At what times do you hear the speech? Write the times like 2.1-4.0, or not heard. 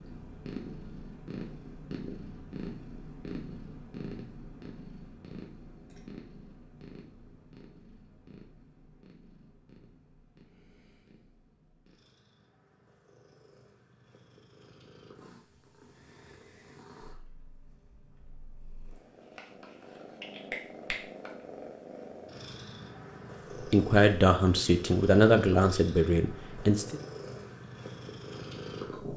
23.7-27.0.